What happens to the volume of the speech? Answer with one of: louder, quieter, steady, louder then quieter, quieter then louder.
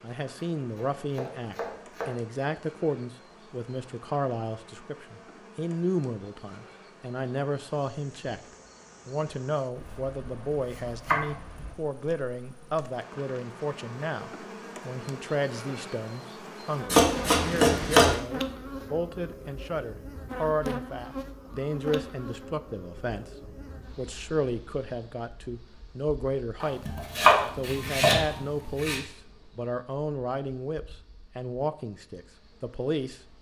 steady.